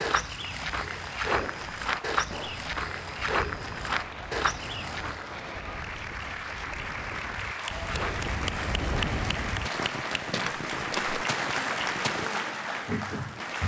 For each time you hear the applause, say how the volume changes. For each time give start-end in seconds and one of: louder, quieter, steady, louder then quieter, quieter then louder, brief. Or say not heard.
0.0-13.6 louder.